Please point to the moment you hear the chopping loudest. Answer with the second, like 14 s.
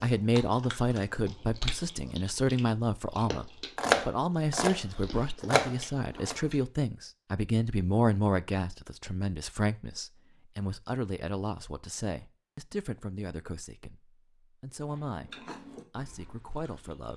4 s.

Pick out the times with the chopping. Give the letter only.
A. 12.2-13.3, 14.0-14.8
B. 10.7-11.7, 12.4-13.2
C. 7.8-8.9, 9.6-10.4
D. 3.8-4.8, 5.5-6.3
D.